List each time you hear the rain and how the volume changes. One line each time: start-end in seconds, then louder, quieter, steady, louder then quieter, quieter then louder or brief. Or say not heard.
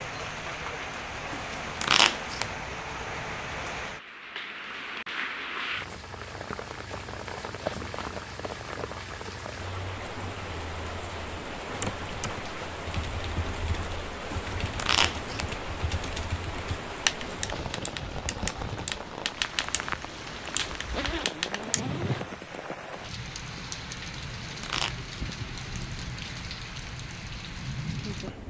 0.0-28.4 steady.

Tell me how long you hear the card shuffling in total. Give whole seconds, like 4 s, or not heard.
3 s.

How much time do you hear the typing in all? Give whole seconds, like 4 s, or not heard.
10 s.